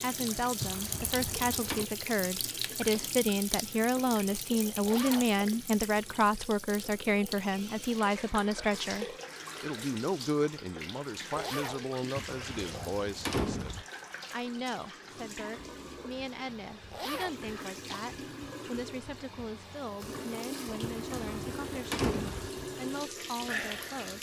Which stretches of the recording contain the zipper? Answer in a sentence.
You can hear the zipper from 4.8 to 5.3 s, from 11.3 to 11.8 s and from 16.9 to 17.4 s.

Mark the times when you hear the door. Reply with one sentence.
The door can be heard from 0.6 to 1.9 s, from 12.2 to 13.8 s and from 21.0 to 22.5 s.